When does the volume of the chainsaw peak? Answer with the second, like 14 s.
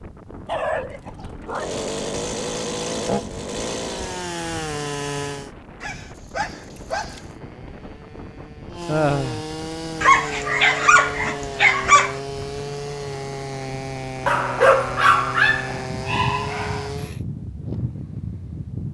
3 s.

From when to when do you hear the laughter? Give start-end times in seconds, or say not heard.
8.8-9.4.